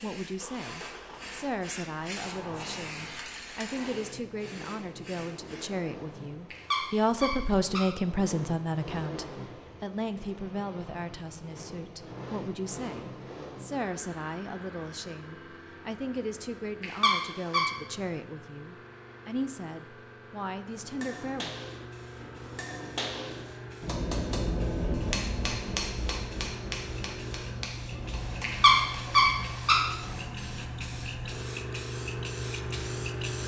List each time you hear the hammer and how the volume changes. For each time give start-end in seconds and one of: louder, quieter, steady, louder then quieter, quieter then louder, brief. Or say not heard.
20.7-29.5 louder then quieter.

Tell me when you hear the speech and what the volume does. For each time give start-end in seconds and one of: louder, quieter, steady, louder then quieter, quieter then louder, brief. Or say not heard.
0.0-21.6 louder then quieter.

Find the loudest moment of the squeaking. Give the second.
29 s.